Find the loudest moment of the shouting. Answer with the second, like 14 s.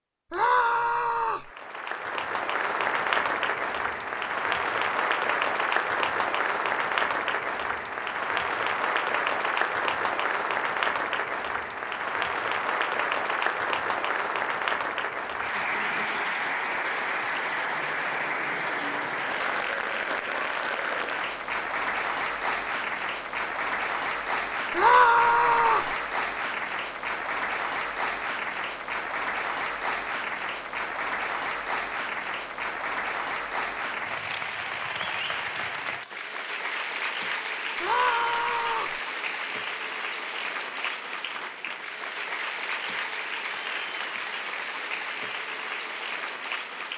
25 s.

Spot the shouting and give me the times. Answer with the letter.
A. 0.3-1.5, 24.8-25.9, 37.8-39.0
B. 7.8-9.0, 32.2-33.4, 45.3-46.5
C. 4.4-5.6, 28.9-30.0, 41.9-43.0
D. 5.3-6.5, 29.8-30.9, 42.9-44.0
A.